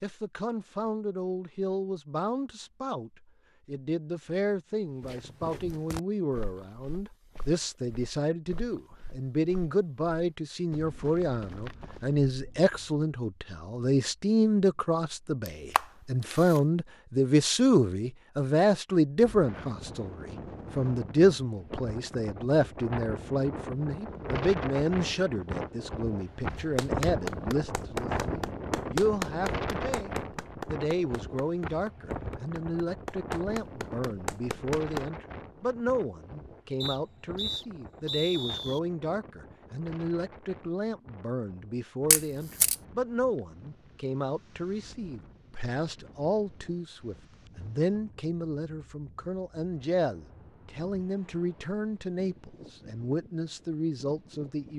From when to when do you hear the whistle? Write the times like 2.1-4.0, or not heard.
36.8-38.8.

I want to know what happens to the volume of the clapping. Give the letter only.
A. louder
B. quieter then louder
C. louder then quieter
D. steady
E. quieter
B.